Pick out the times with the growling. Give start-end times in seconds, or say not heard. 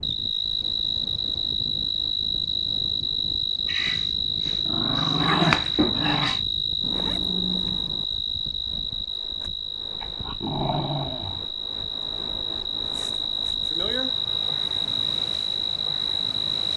3.6-6.4, 10.0-11.4.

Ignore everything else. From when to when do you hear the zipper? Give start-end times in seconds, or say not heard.
6.8-8.1.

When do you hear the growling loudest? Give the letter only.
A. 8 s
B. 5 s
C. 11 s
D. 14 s
B.